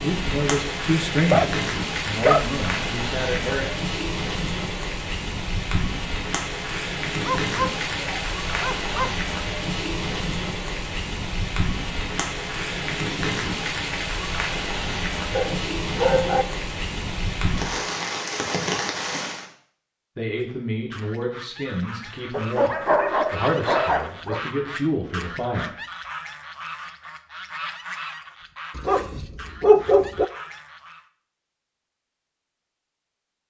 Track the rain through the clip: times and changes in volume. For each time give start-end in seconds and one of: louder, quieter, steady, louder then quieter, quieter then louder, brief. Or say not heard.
0.0-19.4 steady.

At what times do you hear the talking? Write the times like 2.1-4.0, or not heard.
0.0-3.6, 20.1-25.8.